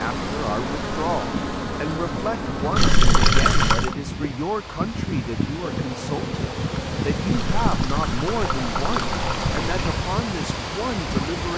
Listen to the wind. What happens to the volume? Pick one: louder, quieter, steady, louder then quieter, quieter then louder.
louder.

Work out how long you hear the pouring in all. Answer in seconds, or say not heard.
4 s.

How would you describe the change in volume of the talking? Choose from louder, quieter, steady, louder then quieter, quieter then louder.
steady.